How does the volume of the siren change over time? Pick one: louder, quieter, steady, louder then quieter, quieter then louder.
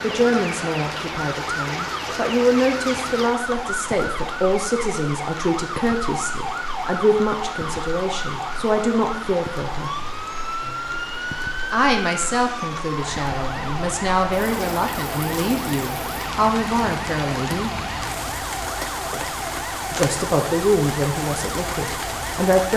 steady.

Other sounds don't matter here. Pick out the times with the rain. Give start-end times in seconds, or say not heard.
0.0-22.7.